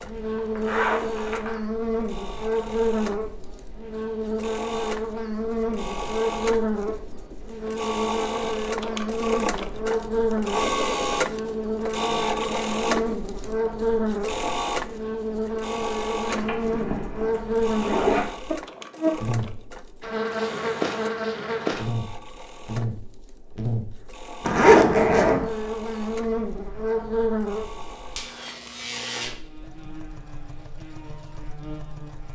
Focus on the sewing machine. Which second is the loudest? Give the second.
11 s.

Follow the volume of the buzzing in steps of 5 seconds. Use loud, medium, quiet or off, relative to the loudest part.
loud, loud, loud, loud, loud, loud, quiet.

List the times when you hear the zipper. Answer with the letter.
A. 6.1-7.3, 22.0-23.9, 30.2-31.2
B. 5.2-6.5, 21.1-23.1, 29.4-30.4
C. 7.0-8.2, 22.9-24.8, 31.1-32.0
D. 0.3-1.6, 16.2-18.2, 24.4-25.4
D.